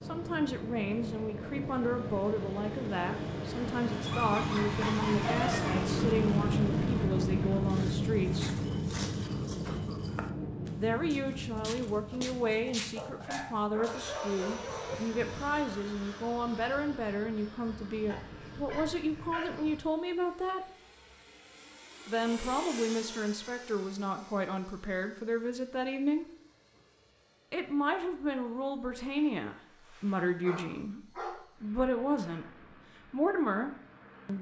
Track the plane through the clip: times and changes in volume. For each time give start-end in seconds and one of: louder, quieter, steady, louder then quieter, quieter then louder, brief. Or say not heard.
0.0-34.3 quieter.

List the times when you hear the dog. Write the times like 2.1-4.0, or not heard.
4.0-5.9, 12.9-14.9, 18.1-19.6, 29.1-31.4.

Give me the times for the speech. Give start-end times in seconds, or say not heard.
0.0-8.6, 10.8-20.6, 22.1-26.2, 27.5-34.3.